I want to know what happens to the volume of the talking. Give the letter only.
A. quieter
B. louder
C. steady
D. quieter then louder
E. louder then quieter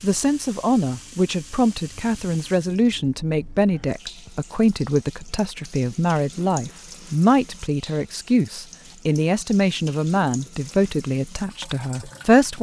C.